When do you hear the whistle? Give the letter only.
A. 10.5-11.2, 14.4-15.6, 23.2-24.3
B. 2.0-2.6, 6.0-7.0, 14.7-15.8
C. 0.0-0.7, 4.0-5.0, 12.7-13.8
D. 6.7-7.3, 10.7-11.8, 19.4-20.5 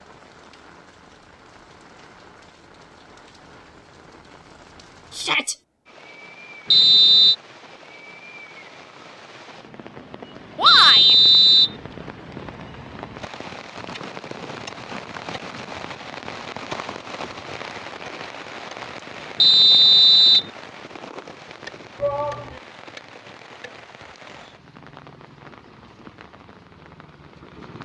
D.